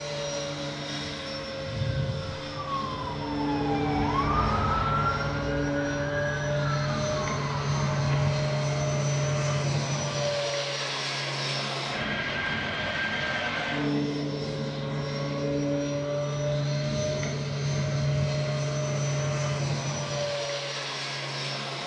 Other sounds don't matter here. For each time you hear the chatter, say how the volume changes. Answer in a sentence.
The chatter can't be heard in this clip.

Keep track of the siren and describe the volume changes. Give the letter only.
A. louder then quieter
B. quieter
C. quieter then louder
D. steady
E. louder
A.